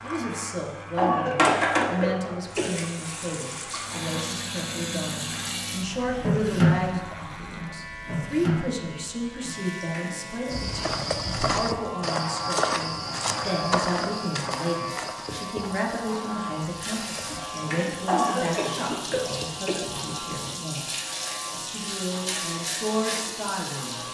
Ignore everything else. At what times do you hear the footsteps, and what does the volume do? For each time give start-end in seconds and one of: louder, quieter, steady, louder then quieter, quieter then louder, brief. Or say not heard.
10.5-17.4 quieter.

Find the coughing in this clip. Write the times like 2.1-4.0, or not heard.
0.9-2.7, 18.1-19.8.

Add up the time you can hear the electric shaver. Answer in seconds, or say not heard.
24 s.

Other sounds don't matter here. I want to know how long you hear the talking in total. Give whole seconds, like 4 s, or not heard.
24 s.